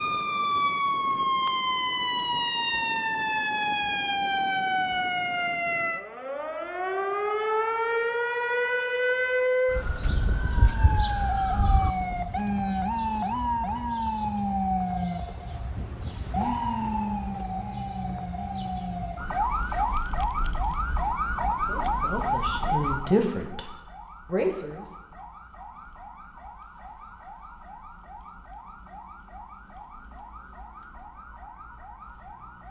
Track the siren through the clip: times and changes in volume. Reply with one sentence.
The siren can be heard from 0.0 to 32.6 s, getting quieter.